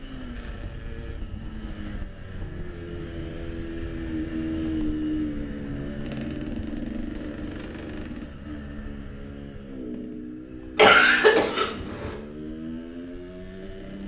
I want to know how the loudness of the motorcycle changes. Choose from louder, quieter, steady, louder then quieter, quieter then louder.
louder then quieter.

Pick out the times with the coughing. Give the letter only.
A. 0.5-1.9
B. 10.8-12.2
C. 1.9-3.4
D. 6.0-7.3
B.